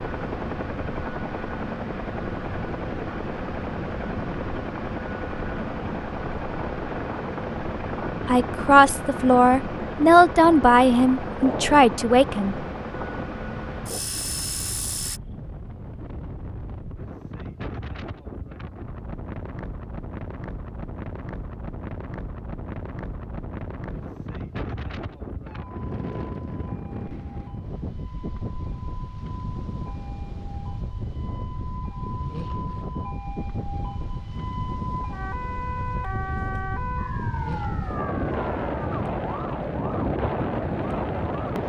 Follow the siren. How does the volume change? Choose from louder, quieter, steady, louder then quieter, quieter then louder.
louder.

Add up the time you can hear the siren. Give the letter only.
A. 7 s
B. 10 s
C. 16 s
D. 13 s
C.